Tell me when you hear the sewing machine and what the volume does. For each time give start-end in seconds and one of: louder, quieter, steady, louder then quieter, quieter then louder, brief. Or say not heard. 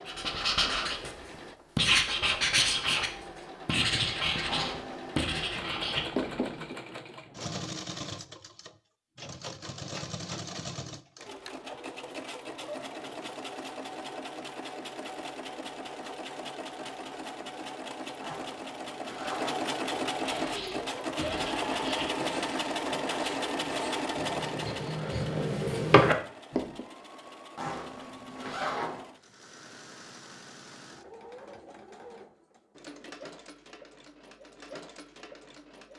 0.0-35.9 louder then quieter.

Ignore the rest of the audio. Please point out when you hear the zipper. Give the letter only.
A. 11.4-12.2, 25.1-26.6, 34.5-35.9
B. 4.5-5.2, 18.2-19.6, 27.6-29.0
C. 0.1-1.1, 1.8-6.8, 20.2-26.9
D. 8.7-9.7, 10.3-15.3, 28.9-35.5
B.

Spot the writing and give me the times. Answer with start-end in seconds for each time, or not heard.
0.1-1.1, 1.8-6.8, 20.2-26.9.